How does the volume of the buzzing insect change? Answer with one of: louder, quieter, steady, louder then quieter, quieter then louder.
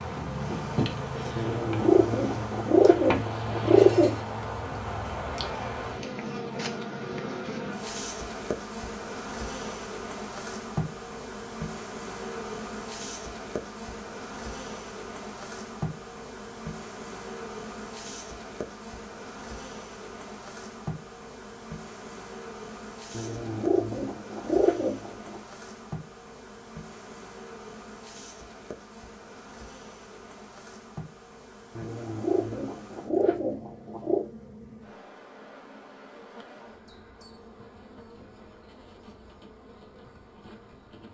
quieter.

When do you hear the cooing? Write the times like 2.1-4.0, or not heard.
1.4-4.2, 23.1-25.4, 31.8-34.2.